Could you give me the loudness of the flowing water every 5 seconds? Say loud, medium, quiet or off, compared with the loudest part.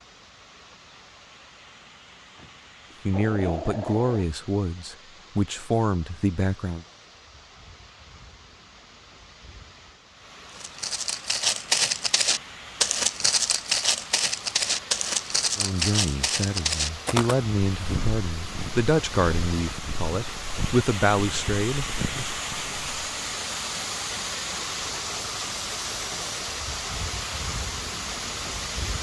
quiet, quiet, medium, medium, loud, loud.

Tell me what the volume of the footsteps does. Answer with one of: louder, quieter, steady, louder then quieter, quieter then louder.
quieter.